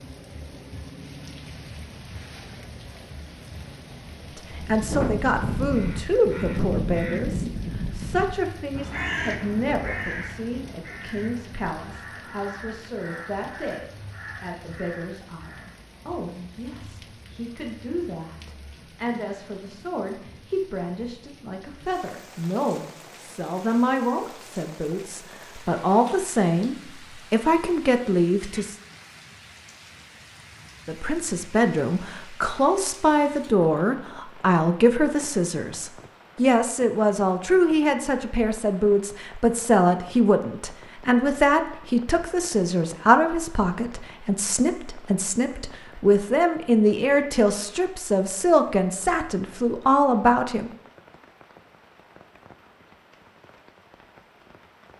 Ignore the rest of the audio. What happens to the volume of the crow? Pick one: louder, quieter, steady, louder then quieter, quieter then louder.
quieter.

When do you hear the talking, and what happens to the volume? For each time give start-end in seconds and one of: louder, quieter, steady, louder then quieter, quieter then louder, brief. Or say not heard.
4.3-28.8 quieter then louder
30.9-50.7 steady.